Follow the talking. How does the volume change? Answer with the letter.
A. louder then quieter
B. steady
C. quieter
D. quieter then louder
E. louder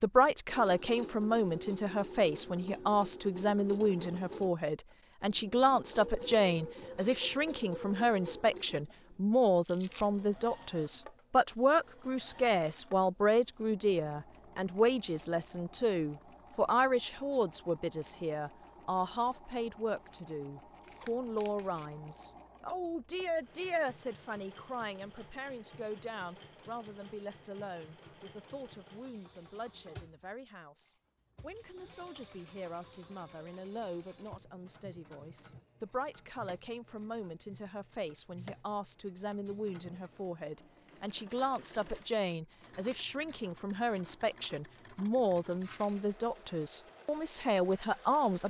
D.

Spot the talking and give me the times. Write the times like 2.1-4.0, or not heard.
0.0-48.4.